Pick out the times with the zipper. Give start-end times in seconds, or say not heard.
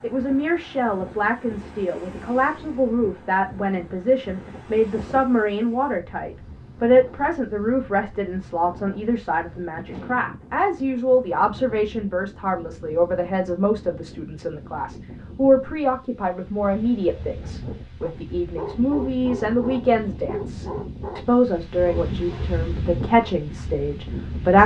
not heard.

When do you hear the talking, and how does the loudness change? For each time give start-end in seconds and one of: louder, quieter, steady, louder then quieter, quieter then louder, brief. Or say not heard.
0.0-24.6 steady.